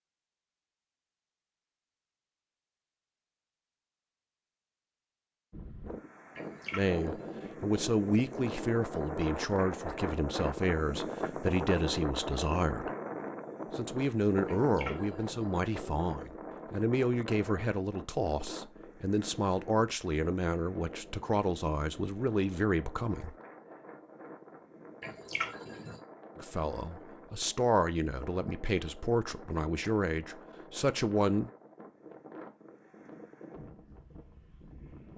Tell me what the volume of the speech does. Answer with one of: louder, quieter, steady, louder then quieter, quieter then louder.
steady.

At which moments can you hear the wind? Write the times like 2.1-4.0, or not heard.
5.5-35.1.